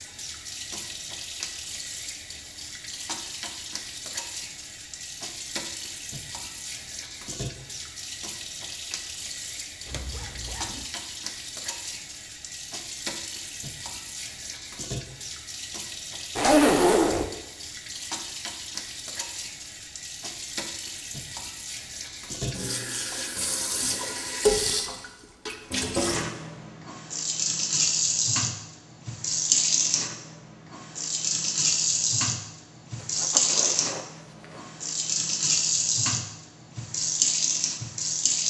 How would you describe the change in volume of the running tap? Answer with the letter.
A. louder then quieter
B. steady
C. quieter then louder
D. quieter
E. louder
E.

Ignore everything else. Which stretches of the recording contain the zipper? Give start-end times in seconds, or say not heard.
9.8-10.8, 16.4-17.2, 33.0-34.6.